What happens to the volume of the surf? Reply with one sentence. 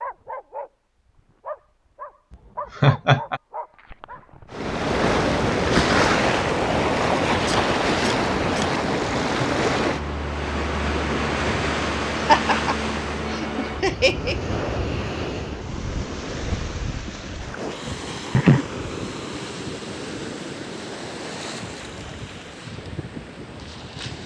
The volume of the surf goes down.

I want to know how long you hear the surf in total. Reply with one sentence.
The surf can be heard for 20 seconds in total.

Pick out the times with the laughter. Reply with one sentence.
The laughter can be heard from 2.8 to 3.4 s, from 12.2 to 14.3 s and from 17.9 to 18.6 s.